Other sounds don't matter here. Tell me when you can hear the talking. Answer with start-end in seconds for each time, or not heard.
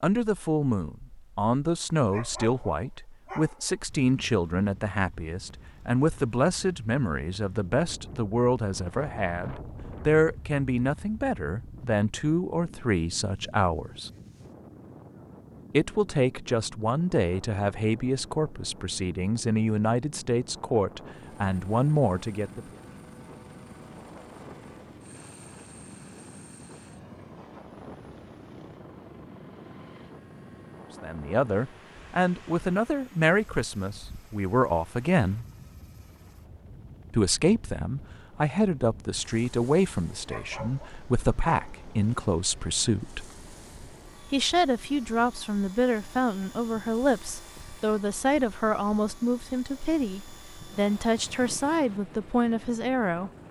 0.0-14.1, 15.7-22.6, 31.0-35.5, 37.1-43.3, 44.3-53.3.